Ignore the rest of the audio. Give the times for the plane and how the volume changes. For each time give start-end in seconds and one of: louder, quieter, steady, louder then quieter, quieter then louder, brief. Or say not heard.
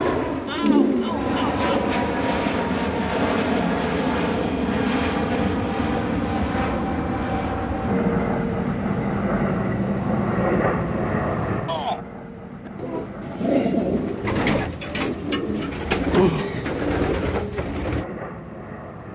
0.0-19.1 quieter.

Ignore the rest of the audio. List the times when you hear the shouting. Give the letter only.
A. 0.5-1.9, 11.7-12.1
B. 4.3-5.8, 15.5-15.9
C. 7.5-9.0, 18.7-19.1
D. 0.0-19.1
A.